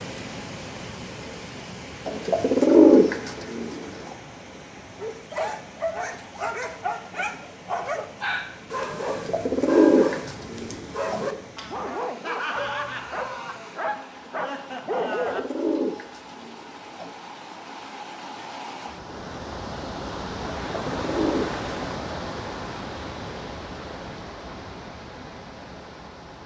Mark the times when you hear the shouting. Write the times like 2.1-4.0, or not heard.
12.6-13.7.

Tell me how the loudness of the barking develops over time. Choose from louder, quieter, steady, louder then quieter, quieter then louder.
steady.